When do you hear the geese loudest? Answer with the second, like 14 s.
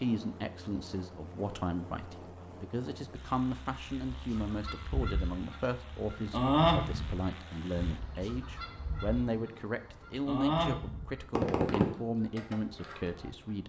7 s.